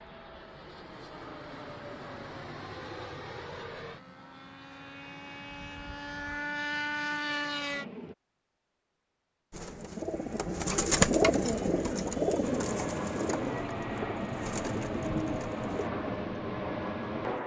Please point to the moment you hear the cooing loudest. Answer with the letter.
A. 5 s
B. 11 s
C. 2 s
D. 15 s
B.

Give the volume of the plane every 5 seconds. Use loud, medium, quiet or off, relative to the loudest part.
medium, loud, loud, loud.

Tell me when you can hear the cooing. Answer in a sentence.
The cooing can be heard from 9.5 to 15.9 s.